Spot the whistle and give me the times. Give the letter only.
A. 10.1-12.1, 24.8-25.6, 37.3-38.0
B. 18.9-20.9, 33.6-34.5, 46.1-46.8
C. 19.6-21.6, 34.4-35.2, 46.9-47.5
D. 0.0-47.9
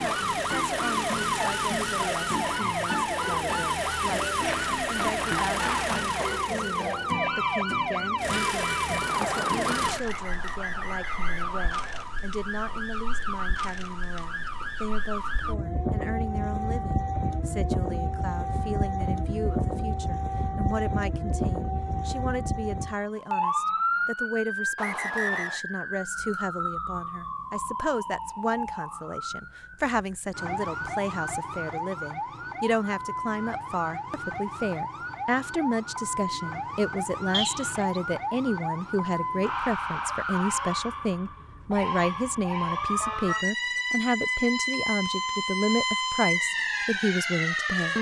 A.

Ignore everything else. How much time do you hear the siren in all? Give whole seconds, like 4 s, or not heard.
48 s.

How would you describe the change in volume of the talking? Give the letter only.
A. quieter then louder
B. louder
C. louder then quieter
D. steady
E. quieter
B.